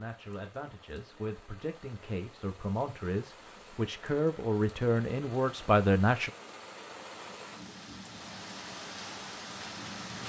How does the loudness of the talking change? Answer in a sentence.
The loudness of the talking goes up.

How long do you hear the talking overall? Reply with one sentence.
You can hear the talking for 6 seconds altogether.